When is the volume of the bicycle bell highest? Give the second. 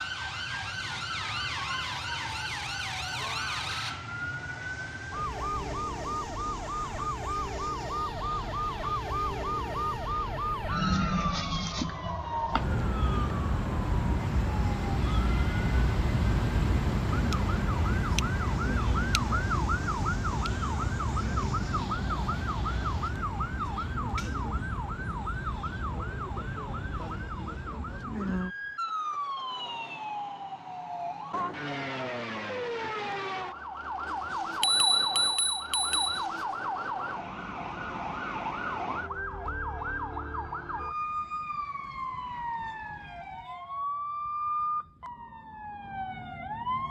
35 s.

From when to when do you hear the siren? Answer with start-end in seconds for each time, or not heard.
0.0-46.8.